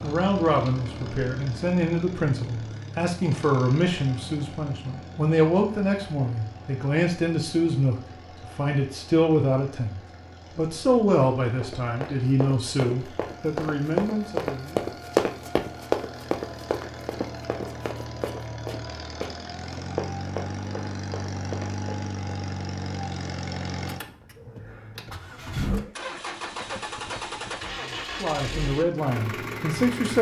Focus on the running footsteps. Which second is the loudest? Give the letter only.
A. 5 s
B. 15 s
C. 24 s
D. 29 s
B.